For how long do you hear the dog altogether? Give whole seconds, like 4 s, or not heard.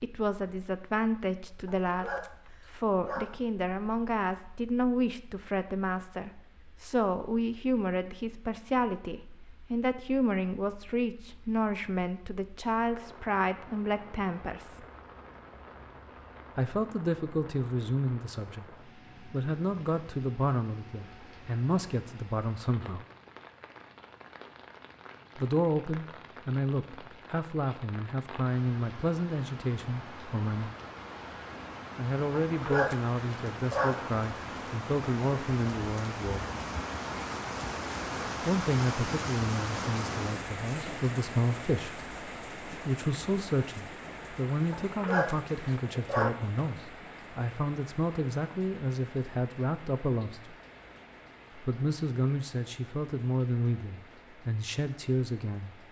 5 s.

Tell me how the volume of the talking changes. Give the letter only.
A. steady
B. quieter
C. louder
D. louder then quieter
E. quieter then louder
A.